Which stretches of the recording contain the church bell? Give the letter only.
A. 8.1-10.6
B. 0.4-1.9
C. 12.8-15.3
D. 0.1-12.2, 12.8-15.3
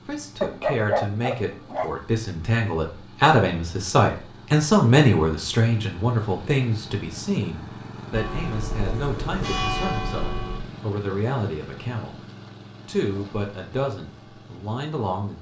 A.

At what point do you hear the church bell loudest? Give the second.
10 s.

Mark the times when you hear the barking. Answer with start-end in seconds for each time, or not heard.
0.4-1.9.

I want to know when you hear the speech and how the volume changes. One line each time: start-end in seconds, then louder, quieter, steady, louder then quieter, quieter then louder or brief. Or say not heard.
0.1-12.2 louder then quieter
12.8-15.3 brief.